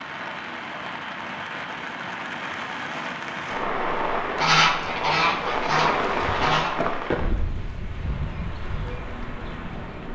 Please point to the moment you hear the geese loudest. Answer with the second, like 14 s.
5 s.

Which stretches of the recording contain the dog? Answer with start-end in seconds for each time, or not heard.
not heard.